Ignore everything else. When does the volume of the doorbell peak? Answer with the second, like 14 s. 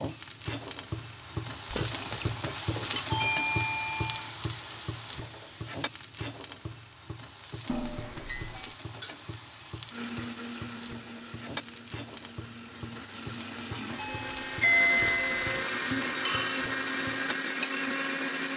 15 s.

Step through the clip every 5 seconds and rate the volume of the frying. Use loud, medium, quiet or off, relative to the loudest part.
loud, medium, medium, medium.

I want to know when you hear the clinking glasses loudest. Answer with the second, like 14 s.
16 s.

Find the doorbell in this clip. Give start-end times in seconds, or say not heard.
3.1-4.3, 7.7-8.8, 13.9-15.5.